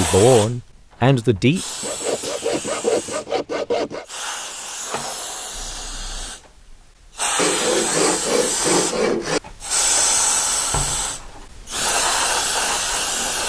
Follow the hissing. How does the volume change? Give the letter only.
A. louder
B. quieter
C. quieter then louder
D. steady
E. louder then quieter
A.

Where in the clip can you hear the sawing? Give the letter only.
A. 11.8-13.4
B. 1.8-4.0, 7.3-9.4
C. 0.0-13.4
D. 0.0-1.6
B.